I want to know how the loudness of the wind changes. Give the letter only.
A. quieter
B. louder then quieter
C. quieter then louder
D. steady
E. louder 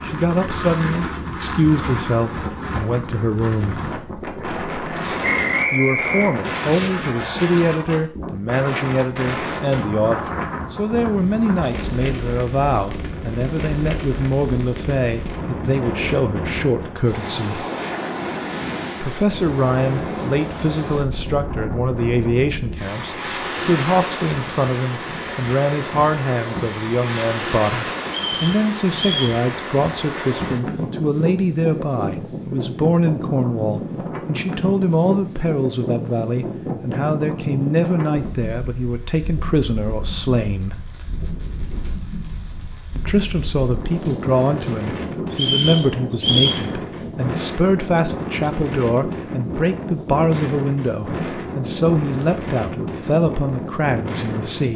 D.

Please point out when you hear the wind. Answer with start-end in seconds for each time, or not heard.
0.0-54.7.